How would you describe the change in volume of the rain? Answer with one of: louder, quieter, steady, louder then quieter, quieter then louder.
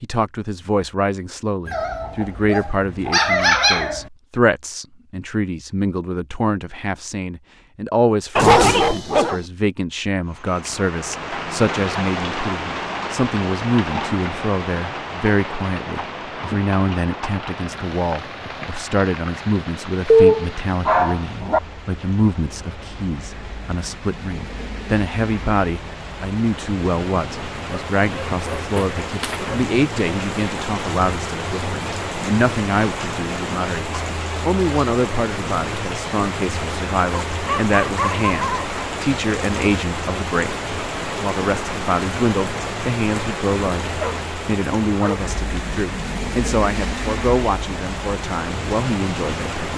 quieter then louder.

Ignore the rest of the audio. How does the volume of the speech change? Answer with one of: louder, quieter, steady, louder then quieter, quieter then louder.
steady.